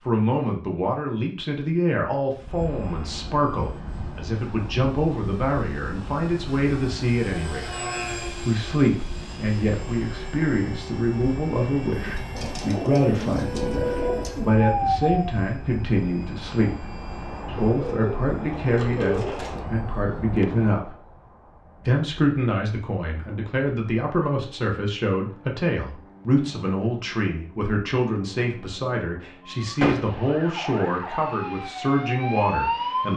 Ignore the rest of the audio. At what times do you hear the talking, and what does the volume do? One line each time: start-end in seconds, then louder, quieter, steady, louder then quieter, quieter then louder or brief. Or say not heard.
0.1-7.7 steady
8.4-20.9 steady
21.9-33.1 steady.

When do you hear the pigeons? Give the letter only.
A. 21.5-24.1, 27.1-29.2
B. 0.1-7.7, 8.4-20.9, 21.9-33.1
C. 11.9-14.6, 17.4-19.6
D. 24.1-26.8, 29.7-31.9
C.